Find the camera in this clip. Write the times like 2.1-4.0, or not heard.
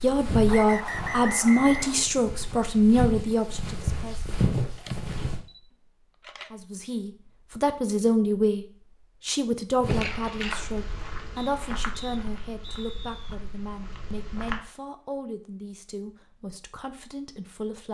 4.8-6.7, 9.8-10.6.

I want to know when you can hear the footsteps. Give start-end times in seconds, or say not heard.
0.0-5.5, 9.8-14.6.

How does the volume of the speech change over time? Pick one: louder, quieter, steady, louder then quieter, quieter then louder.
quieter.